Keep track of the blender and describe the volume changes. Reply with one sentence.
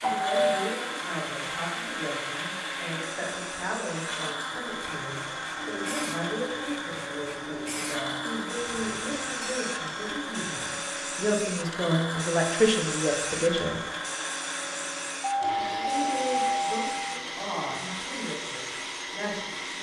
The volume of the blender stays about the same.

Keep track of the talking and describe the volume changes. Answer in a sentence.
The volume of the talking goes up, then down.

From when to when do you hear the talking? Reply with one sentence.
You can hear the talking from 0.0 to 13.8 s and from 15.5 to 19.7 s.